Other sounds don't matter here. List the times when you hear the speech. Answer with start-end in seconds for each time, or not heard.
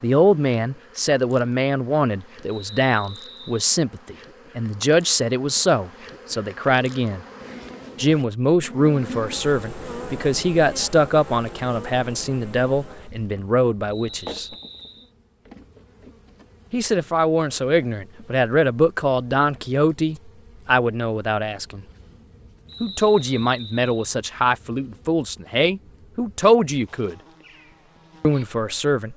0.0-7.2, 8.0-14.5, 16.7-21.9, 22.8-27.1, 28.2-29.1.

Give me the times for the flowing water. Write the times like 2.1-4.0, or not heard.
not heard.